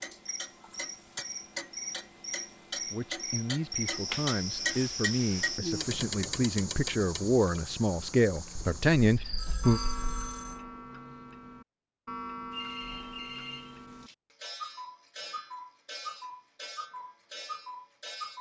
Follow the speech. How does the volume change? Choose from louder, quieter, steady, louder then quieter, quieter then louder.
louder.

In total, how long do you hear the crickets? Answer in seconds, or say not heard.
10 s.